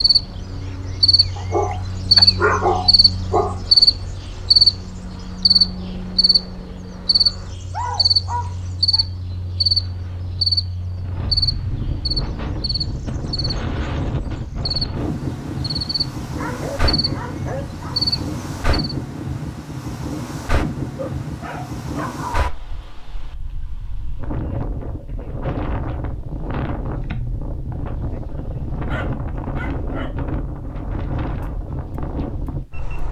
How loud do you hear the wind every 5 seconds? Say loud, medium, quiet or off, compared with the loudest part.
quiet, quiet, loud, loud, loud, loud, loud.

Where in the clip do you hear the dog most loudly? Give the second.
3 s.